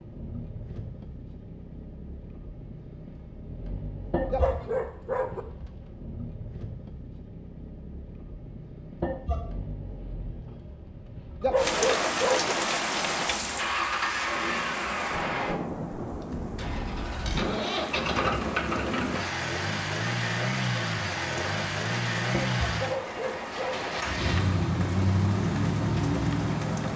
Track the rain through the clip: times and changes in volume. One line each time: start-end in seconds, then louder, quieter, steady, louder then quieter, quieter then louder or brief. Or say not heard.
11.6-26.9 quieter.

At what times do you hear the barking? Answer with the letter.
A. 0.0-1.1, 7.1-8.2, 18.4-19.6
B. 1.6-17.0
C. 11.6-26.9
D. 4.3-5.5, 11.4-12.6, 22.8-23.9
D.